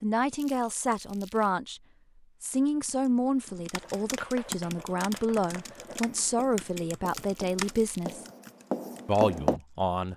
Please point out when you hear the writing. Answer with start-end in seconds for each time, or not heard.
3.8-9.6.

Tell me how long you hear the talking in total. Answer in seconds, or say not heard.
9 s.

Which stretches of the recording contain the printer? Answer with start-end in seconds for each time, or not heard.
not heard.